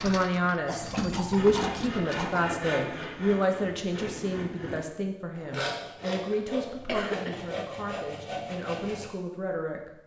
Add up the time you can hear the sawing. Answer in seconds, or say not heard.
8 s.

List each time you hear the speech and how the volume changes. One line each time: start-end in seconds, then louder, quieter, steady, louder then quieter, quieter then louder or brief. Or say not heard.
0.0-9.9 quieter.